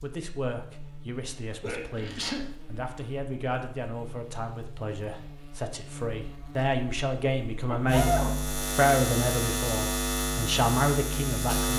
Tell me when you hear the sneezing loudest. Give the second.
8 s.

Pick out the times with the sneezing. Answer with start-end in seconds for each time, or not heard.
1.6-2.4, 7.7-8.3.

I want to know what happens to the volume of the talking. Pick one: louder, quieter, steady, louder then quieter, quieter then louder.
louder.